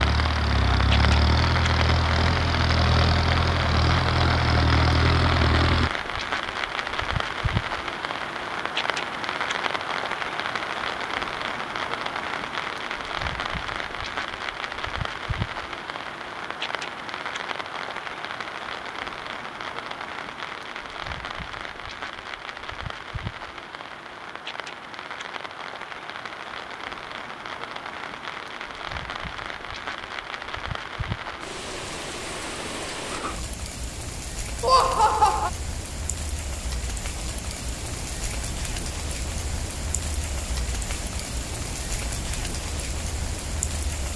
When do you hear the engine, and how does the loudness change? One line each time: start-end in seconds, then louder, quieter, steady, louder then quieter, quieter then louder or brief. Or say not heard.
0.0-5.9 steady.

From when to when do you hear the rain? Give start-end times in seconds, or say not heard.
0.0-44.1.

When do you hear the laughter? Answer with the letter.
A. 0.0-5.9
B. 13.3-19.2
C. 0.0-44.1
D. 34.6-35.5
D.